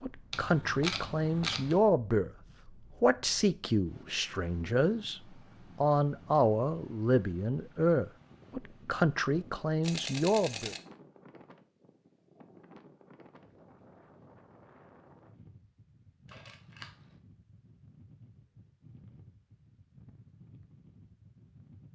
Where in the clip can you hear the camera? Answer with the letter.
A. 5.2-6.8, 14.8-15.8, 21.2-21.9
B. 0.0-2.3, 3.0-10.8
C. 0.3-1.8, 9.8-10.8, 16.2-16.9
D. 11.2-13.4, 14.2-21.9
C.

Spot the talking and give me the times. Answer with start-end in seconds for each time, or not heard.
0.0-2.3, 3.0-10.8.